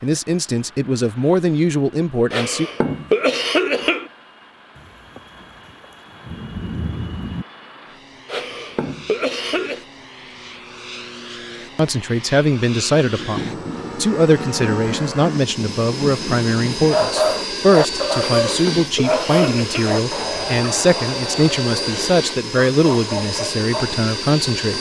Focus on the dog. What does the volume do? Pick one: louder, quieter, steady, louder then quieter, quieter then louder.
quieter.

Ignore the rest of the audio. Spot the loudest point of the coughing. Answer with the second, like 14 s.
3 s.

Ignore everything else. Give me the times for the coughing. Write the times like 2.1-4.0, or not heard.
2.3-4.1, 8.2-9.8, 18.1-19.9.